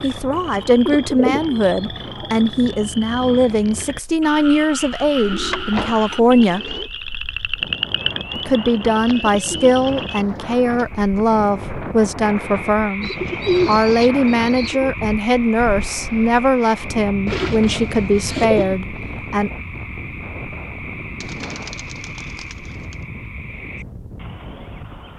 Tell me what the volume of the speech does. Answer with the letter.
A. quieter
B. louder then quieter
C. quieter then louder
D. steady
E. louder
D.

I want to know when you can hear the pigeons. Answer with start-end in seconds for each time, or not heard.
0.6-2.2, 5.2-6.9, 8.9-10.8, 13.0-14.9, 17.2-18.8, 21.2-22.9.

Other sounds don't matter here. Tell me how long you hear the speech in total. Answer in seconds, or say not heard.
18 s.